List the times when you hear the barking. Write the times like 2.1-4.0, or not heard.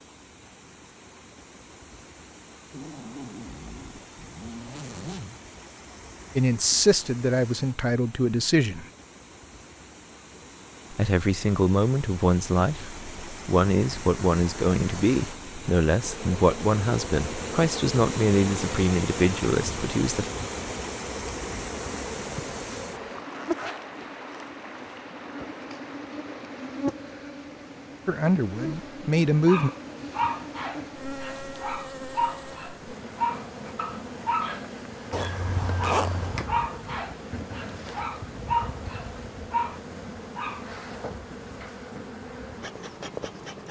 29.4-40.6.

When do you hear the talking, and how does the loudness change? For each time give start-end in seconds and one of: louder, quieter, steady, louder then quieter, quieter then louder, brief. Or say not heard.
6.3-8.8 brief
10.9-20.3 steady
28.1-29.7 brief.